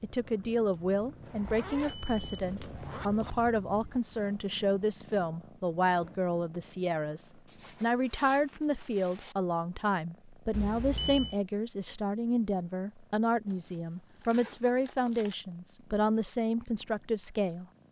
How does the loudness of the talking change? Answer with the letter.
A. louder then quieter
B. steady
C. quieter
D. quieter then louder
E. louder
B.